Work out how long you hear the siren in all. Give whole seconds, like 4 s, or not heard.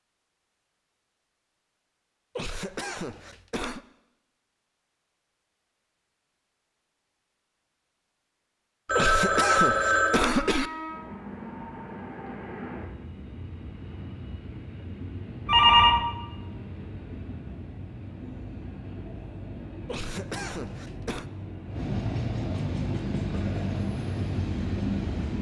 not heard.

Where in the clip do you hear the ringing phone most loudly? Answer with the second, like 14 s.
16 s.